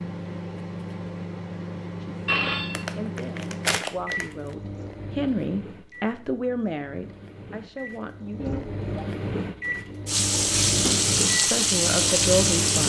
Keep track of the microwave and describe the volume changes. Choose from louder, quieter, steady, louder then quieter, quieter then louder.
quieter then louder.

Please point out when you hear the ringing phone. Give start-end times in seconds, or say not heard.
2.2-2.9, 8.3-8.9.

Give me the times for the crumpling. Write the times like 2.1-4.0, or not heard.
2.8-4.5.